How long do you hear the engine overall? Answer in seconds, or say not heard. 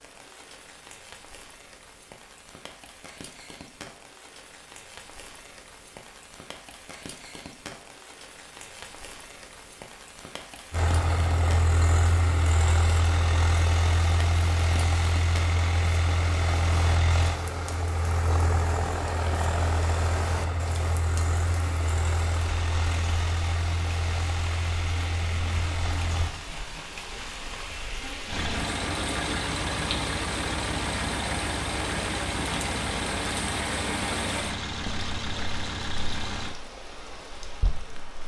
24 s.